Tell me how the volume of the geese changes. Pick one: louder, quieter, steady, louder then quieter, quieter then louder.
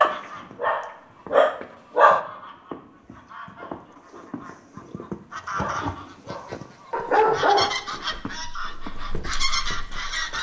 louder.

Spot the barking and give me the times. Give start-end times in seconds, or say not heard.
0.0-2.2, 5.5-10.3.